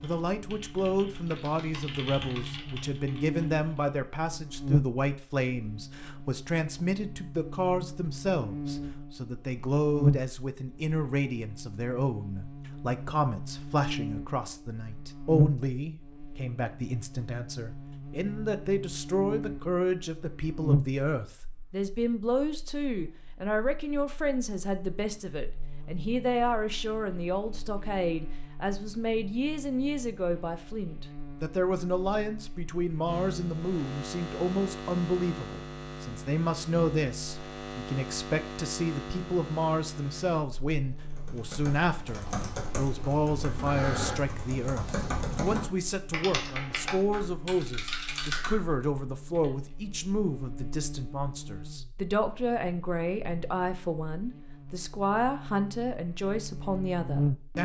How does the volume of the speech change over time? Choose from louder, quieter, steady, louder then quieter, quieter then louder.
steady.